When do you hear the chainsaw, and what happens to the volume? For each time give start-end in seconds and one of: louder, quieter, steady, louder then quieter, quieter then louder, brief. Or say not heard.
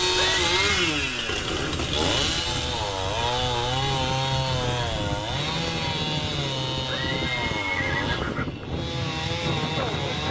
0.0-10.2 quieter.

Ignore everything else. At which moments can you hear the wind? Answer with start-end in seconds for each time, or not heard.
0.0-10.2.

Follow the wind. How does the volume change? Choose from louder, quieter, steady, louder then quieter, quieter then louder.
louder.